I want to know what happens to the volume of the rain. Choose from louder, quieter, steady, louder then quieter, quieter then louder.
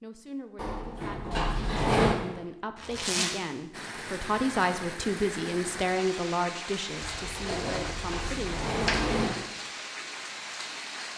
steady.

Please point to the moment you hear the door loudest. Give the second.
2 s.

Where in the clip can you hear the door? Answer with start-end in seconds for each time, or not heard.
0.6-2.1, 7.3-9.3.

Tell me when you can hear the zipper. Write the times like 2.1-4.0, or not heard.
2.8-3.4, 7.0-9.0.